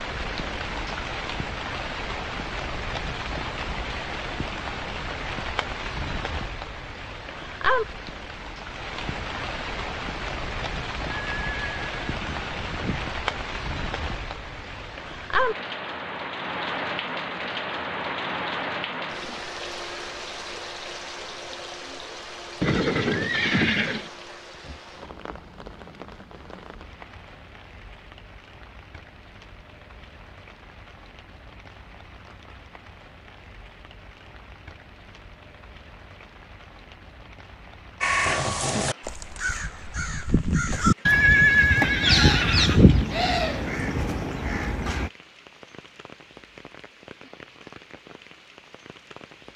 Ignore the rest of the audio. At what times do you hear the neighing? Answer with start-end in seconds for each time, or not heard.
11.1-13.1, 22.6-24.1, 41.0-43.0.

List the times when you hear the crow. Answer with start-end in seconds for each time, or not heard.
38.0-45.1.